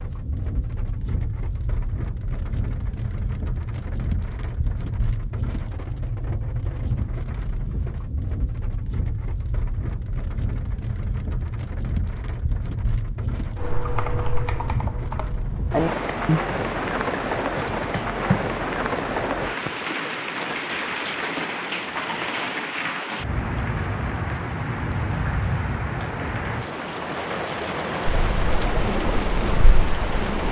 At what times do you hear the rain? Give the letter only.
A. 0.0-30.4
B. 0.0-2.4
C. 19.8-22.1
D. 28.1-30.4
A.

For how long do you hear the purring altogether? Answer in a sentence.
The purring can be heard for 2 seconds in total.